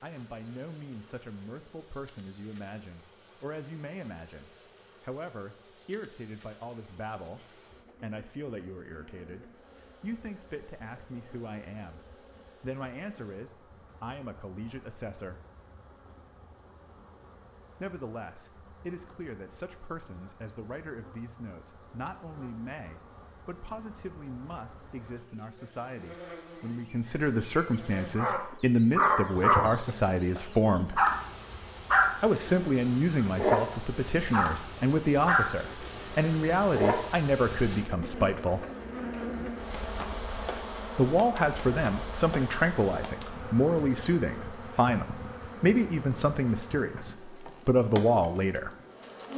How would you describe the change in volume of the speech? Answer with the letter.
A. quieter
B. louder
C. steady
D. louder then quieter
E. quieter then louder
B.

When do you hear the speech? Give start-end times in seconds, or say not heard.
0.0-15.4, 17.8-31.0, 32.2-38.6, 41.0-48.8.